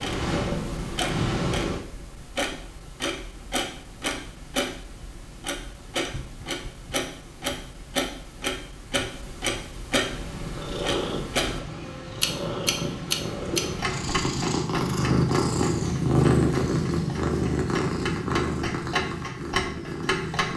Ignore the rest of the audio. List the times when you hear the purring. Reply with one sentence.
The purring can be heard from 0.0 to 1.9 s and from 10.0 to 20.5 s.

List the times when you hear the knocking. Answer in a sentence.
You can hear the knocking from 6.1 to 6.9 s.